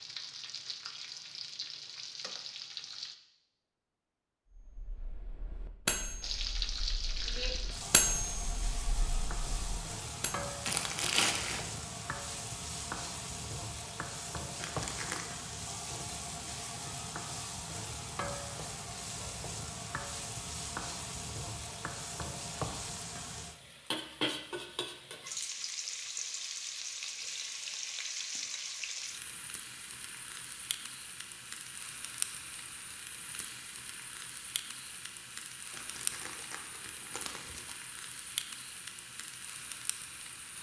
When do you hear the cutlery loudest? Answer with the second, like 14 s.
8 s.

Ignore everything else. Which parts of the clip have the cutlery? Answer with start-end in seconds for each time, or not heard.
4.5-10.3.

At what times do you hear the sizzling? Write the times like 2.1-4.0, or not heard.
0.0-3.1, 6.2-40.5.